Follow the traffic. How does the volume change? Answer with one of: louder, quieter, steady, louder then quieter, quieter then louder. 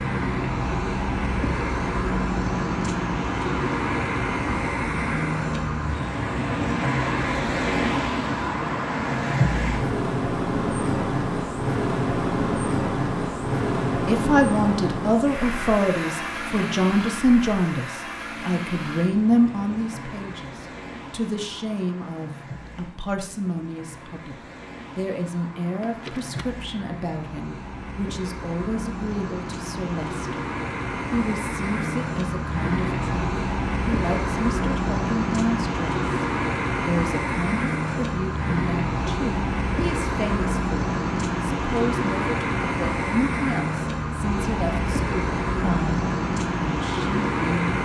quieter then louder.